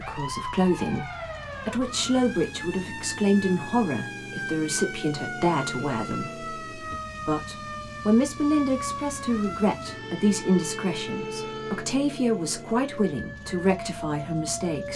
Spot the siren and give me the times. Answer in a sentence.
You can hear the siren from 0.0 to 14.9 s.